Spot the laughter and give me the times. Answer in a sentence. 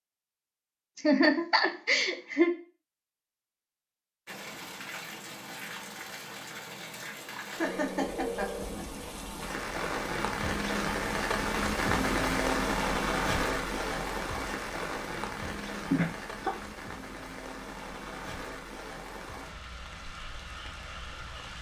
You can hear the laughter from 0.9 to 2.5 s, from 7.5 to 8.8 s and from 15.9 to 16.5 s.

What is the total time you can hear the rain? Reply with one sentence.
You can hear the rain for 17 seconds altogether.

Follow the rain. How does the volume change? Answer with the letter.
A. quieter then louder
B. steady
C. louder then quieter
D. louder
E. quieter
C.